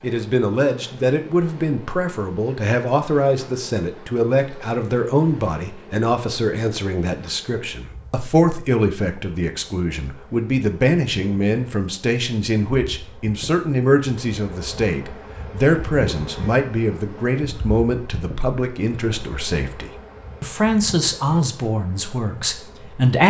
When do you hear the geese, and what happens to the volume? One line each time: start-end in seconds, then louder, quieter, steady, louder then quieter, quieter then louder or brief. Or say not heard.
not heard.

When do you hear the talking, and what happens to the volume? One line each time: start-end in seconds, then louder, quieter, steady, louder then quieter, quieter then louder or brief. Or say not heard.
0.0-23.2 steady.